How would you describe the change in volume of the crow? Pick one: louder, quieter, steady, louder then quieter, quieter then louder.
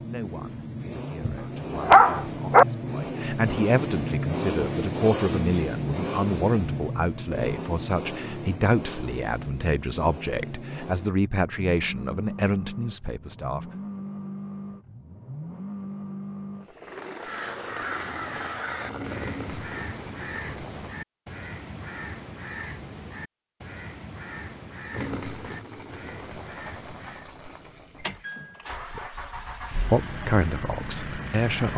quieter.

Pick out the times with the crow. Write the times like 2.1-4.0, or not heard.
17.1-27.3.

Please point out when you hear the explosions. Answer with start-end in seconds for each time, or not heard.
not heard.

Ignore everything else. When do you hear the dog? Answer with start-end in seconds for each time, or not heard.
1.2-2.6.